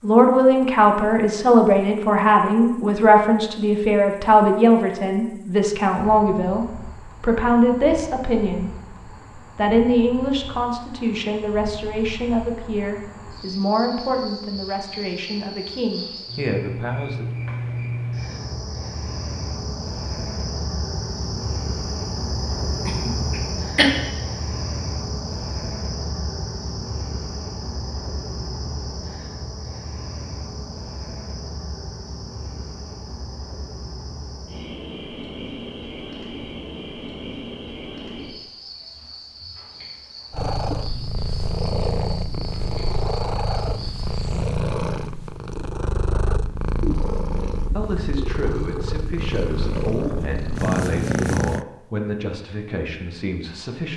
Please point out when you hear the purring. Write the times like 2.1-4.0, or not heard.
40.3-51.6.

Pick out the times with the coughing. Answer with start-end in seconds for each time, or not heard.
22.9-23.9.